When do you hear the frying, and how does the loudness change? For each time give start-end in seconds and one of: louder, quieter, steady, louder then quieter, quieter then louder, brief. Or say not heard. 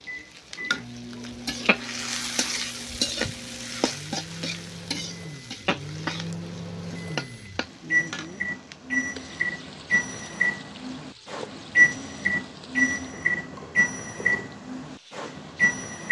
0.0-16.0 quieter.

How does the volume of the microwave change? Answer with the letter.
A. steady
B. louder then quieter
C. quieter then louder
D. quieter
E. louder
E.